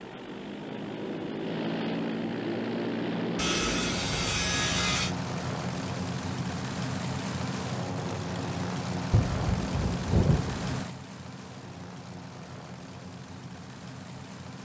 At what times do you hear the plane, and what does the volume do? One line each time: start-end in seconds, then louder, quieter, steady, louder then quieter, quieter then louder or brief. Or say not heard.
0.0-14.5 quieter.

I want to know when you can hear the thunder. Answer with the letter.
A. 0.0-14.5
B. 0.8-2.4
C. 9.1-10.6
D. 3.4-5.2
C.